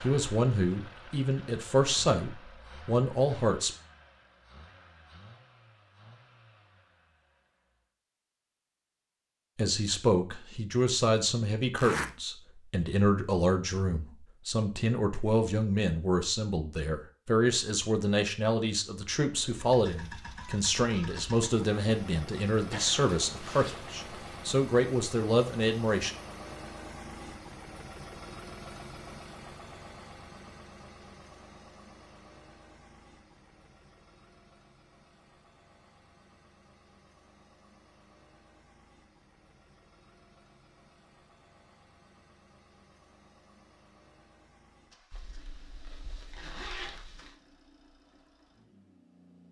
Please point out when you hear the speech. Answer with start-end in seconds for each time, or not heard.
0.0-3.7, 9.6-26.1.